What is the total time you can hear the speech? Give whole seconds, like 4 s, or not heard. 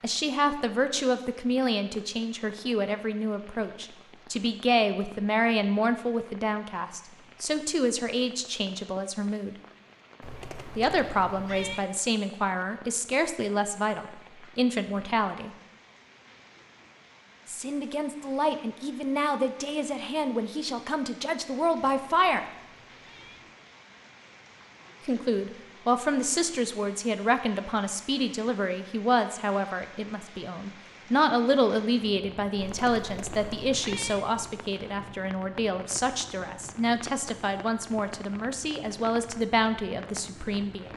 35 s.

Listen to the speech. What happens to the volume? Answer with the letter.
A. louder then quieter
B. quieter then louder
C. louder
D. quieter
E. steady
E.